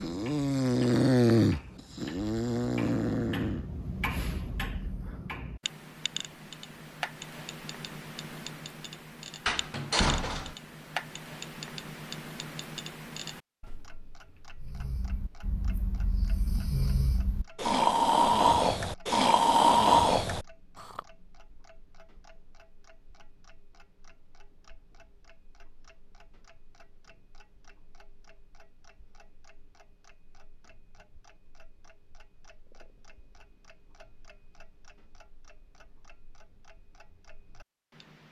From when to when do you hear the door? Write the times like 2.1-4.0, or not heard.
9.4-10.6.